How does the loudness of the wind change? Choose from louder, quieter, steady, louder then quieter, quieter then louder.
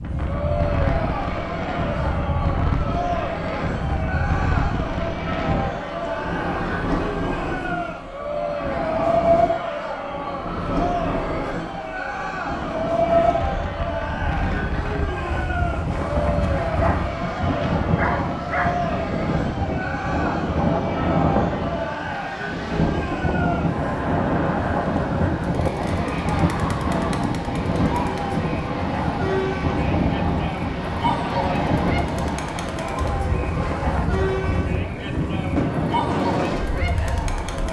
steady.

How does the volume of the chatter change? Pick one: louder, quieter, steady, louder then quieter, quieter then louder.
steady.